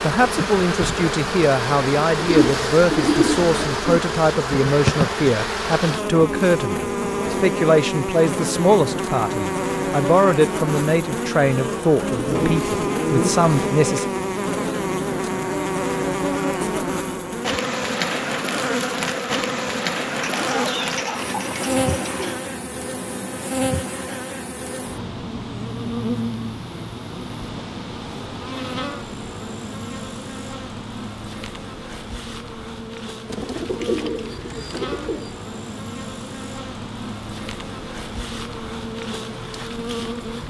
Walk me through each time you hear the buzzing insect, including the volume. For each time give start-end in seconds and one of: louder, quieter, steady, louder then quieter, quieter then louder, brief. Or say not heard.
0.0-40.4 quieter.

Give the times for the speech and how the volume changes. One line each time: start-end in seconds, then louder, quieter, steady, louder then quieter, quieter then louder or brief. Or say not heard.
0.0-14.1 steady.